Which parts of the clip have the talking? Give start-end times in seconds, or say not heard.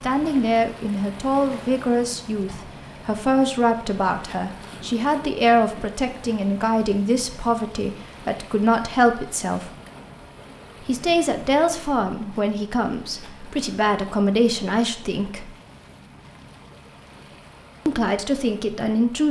0.0-9.8, 10.8-15.5, 17.9-19.2.